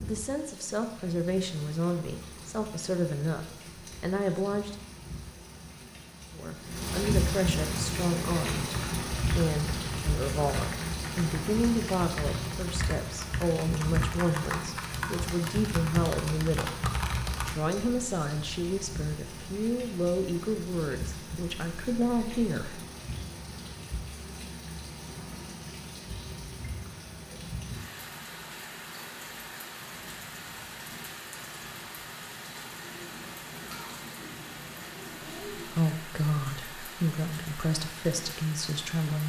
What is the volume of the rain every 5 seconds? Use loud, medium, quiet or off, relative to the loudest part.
quiet, loud, loud, medium, medium, medium, medium, medium.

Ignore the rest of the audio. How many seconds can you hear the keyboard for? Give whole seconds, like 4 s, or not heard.
10 s.